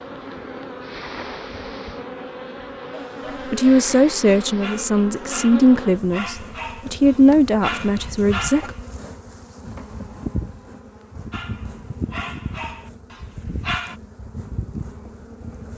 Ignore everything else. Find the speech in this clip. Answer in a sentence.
You can hear the speech from 3.5 to 8.7 s.